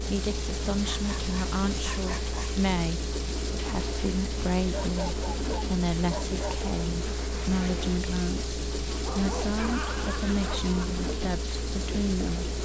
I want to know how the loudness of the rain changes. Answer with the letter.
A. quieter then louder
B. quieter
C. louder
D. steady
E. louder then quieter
D.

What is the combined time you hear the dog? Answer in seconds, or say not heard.
6 s.